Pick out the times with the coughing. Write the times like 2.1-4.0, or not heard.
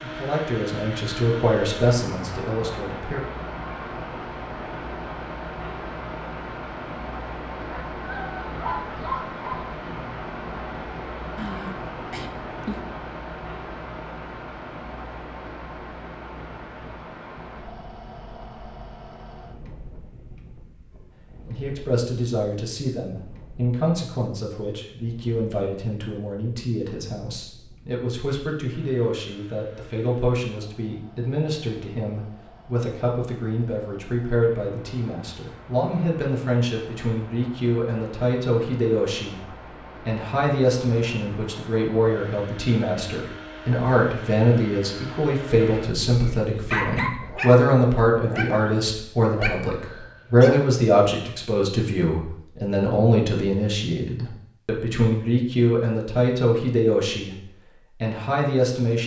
11.3-12.8.